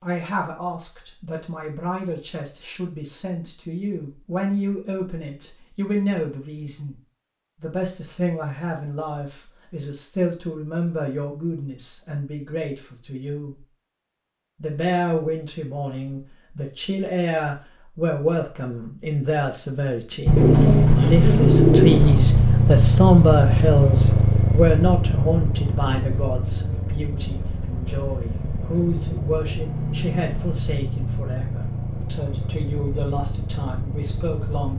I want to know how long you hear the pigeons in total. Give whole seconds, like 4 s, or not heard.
2 s.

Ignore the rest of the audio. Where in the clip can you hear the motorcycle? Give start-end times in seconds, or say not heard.
20.2-34.7.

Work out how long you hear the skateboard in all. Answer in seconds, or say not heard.
not heard.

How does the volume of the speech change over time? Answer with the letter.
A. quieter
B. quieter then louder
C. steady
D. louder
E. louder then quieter
E.